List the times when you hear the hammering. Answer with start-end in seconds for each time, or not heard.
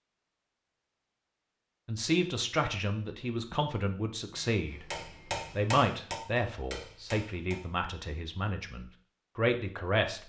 4.9-7.7.